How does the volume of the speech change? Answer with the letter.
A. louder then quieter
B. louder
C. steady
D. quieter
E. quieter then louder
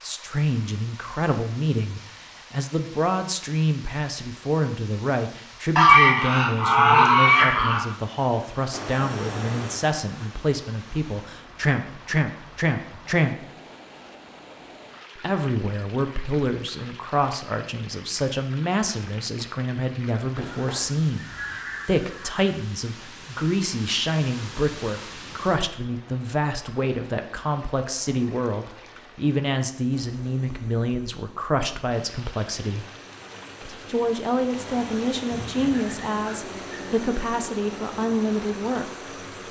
C.